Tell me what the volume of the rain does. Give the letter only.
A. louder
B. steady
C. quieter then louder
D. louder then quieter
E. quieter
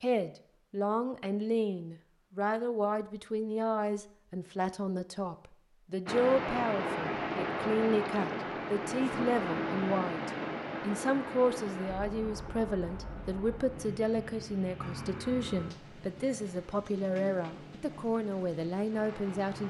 E.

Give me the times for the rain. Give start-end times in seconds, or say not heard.
6.0-19.6.